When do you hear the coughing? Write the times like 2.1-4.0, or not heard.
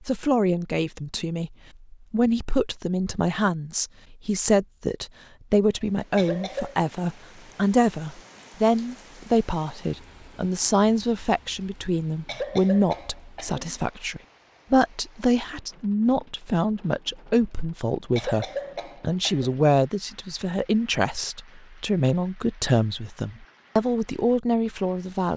6.2-6.8, 12.2-13.8, 18.1-19.6.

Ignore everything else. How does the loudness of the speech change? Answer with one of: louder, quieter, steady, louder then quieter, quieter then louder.
steady.